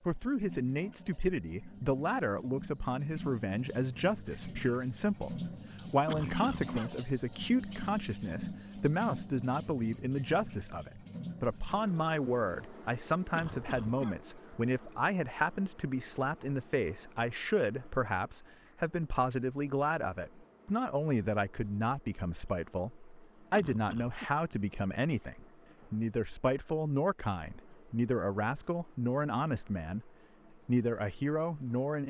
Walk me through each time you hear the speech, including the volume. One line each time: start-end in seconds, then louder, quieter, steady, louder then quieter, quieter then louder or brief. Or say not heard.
0.1-32.0 steady.